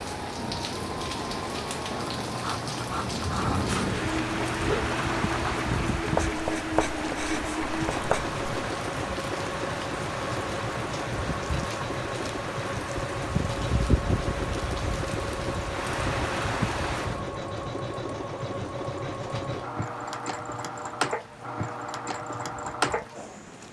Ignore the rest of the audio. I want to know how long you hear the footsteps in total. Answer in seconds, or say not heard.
not heard.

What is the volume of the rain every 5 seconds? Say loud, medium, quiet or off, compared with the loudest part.
loud, loud, loud, loud, quiet.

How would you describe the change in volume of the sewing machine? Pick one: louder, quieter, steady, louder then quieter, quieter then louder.
steady.